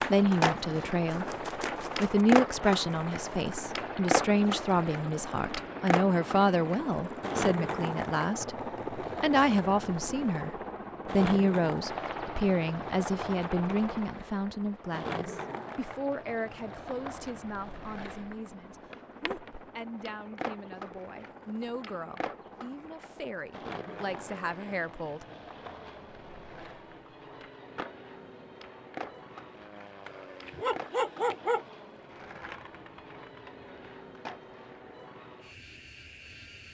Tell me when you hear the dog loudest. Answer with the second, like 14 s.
31 s.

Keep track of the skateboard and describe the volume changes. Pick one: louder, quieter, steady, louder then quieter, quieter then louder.
quieter.